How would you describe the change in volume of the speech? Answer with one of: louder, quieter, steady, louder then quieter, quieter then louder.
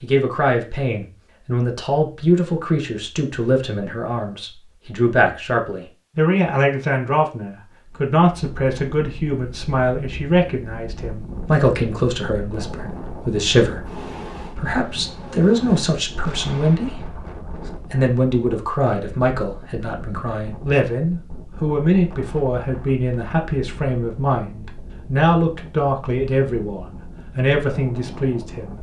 steady.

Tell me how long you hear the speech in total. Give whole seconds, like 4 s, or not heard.
28 s.